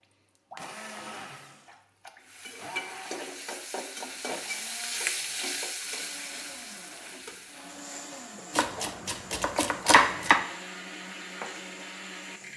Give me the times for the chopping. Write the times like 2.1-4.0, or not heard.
8.6-10.4.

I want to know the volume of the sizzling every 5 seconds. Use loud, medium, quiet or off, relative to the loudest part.
loud, loud, medium.